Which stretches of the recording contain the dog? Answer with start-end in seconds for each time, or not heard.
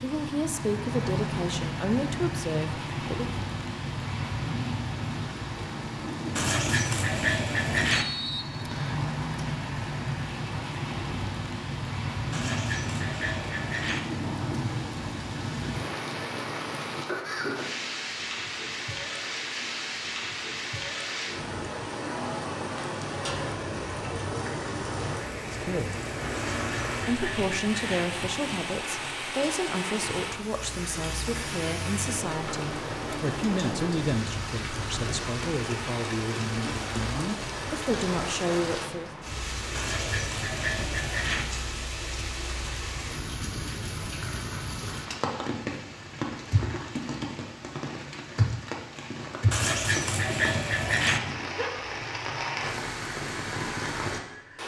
not heard.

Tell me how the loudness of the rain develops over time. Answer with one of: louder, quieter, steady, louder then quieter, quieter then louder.
steady.